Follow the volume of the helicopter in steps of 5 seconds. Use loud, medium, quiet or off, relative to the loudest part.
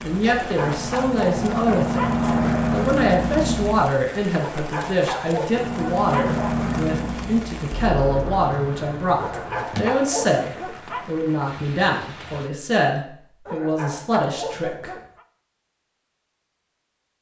loud, loud, off, off.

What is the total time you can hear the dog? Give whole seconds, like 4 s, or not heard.
8 s.